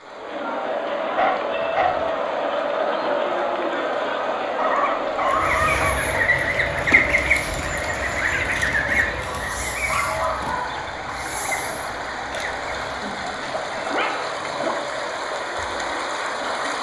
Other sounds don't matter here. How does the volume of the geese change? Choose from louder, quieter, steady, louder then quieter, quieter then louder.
quieter.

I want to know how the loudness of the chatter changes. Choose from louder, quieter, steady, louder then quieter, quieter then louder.
quieter.